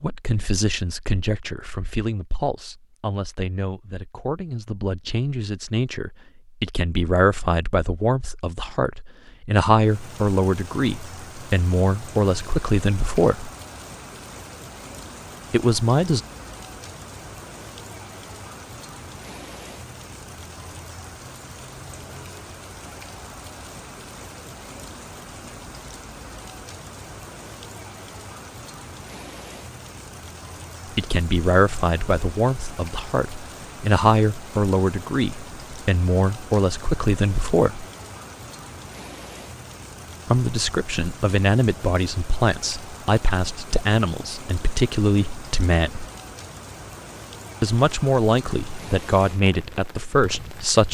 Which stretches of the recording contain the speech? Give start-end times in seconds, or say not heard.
0.0-13.5, 15.5-16.2, 30.9-37.9, 40.3-46.0, 47.6-50.8.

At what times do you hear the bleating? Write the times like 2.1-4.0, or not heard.
not heard.